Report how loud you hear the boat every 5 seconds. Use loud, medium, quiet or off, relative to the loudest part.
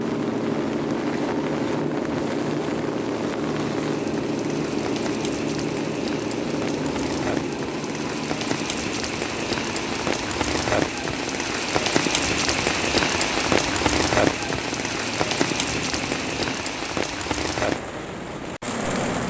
loud, loud, medium, medium.